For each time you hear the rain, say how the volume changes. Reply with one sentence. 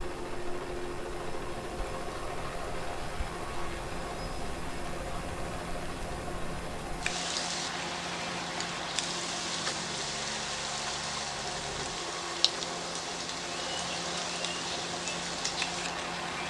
You can hear the rain from 0.0 to 16.4 s, getting louder.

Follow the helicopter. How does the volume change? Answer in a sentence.
The volume of the helicopter stays about the same.